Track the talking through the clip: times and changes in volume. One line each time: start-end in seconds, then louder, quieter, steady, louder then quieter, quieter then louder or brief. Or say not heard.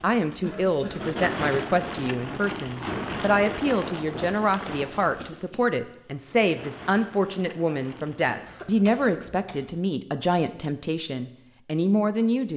0.0-12.5 steady.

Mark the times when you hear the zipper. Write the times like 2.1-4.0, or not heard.
not heard.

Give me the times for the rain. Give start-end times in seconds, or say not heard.
0.0-8.6.